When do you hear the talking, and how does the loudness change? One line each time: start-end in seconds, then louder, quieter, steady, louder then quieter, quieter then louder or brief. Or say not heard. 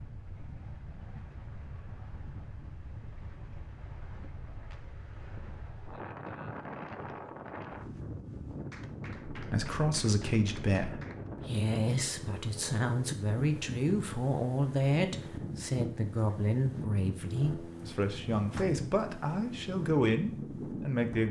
9.3-21.2 steady.